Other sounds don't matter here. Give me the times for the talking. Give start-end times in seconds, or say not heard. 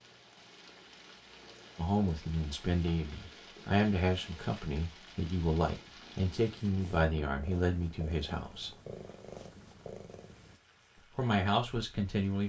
1.8-8.8, 11.2-12.4.